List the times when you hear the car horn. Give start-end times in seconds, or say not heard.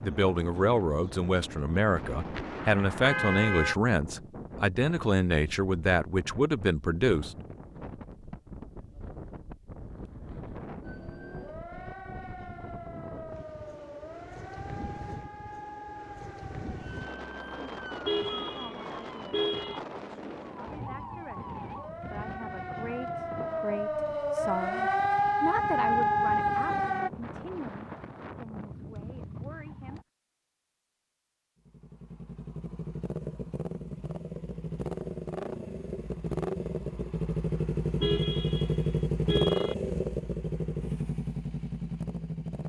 2.4-3.8, 18.1-19.8, 38.0-39.8.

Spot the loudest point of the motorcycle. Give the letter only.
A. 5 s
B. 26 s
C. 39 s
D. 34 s
C.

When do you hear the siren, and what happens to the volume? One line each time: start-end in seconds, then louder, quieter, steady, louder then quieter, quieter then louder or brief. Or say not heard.
10.8-27.1 louder.